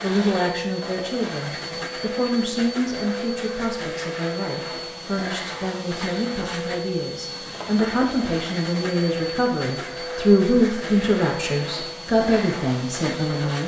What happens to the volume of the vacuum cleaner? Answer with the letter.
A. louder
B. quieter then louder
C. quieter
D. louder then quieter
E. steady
E.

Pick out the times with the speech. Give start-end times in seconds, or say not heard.
0.0-13.6.